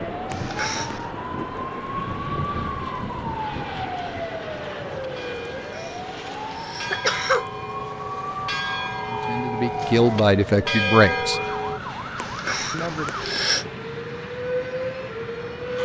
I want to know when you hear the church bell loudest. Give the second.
11 s.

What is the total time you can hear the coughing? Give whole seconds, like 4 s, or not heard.
4 s.